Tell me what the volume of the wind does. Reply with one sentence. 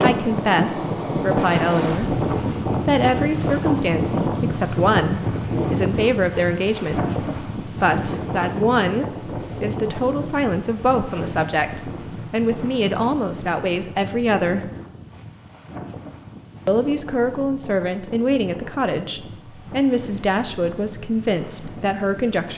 The loudness of the wind goes down.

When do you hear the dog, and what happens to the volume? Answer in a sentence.
The dog can't be heard in this clip.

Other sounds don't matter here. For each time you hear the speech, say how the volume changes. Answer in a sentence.
The speech can be heard from 0.0 to 14.7 s, at a steady volume; and from 16.6 to 22.5 s, at a steady volume.